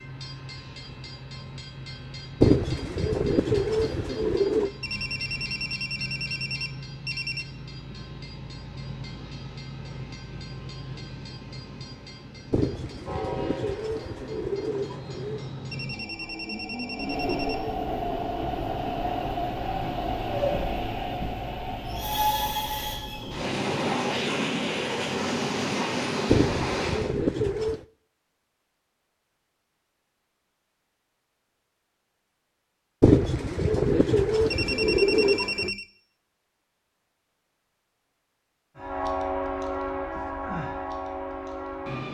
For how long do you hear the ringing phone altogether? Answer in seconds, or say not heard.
6 s.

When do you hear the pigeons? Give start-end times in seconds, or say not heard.
2.4-4.7, 12.5-15.4, 26.2-27.9, 33.0-35.7.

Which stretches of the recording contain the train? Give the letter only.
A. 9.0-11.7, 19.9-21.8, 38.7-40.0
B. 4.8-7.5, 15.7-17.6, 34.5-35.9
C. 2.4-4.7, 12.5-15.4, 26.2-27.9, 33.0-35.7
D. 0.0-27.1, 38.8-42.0
D.